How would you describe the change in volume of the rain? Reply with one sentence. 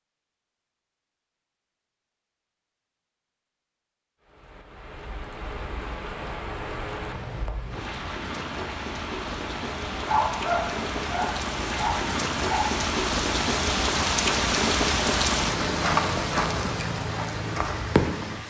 The loudness of the rain goes up.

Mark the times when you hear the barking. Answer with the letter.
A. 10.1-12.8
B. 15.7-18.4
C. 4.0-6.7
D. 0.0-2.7
A.